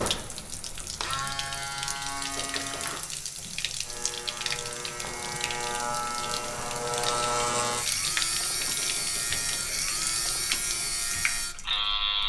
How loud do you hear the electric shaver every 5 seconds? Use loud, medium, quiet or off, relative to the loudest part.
medium, loud, loud.